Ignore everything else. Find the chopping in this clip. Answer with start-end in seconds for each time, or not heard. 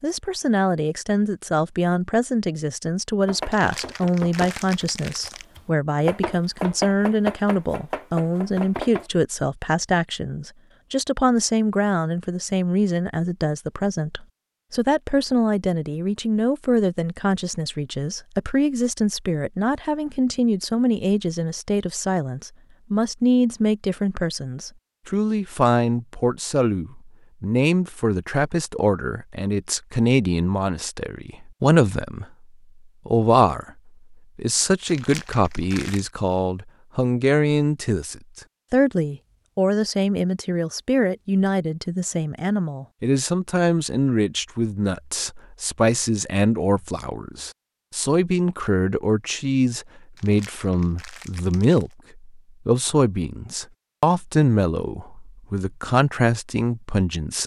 3.2-9.1.